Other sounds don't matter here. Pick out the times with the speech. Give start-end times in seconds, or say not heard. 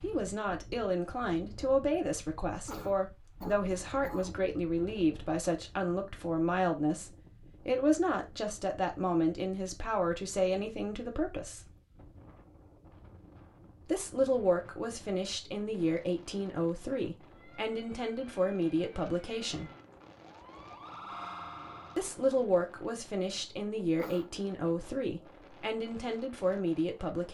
0.0-11.7, 13.8-19.7, 21.9-27.2.